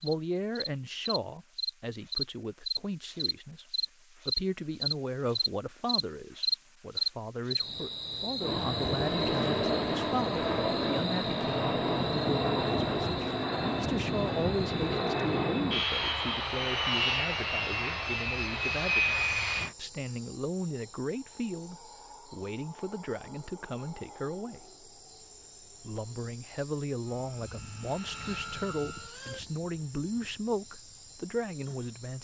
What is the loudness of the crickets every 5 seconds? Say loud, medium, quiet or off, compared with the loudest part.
loud, loud, medium, quiet, quiet, quiet, quiet.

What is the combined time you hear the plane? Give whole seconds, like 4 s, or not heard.
15 s.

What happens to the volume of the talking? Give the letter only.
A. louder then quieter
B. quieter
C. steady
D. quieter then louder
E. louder
C.